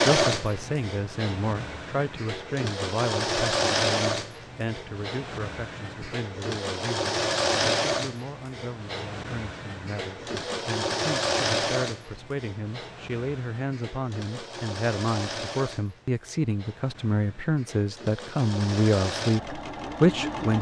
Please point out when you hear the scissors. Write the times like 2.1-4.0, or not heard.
not heard.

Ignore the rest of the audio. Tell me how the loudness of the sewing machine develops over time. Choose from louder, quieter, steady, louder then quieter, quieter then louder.
quieter.